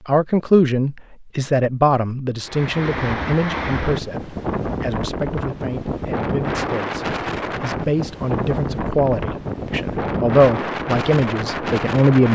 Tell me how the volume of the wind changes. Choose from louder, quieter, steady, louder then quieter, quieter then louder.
steady.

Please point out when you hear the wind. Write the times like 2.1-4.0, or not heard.
2.4-12.3.